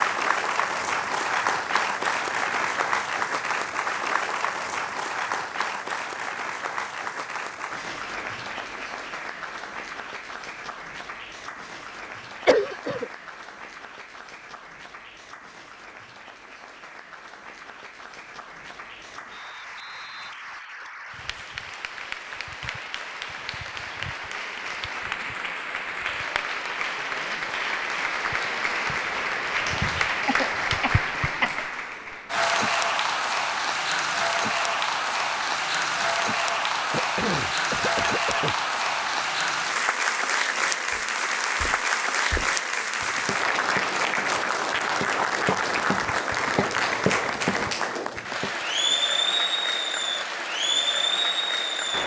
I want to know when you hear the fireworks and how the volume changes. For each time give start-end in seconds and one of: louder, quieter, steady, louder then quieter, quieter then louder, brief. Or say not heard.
not heard.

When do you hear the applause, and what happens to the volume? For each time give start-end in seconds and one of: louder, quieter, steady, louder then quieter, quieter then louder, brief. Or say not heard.
0.0-52.0 quieter then louder.